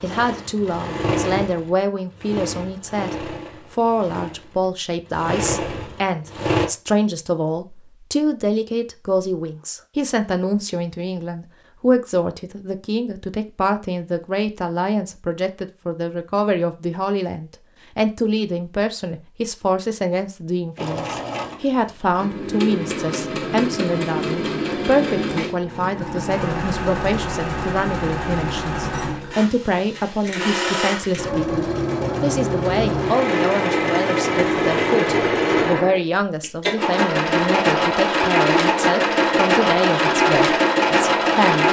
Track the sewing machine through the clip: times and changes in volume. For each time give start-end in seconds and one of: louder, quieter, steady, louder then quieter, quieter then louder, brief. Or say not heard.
0.0-6.7 quieter then louder
20.8-41.6 louder.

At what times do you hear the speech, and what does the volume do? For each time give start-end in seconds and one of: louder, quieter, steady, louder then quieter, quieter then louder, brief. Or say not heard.
0.0-41.6 steady.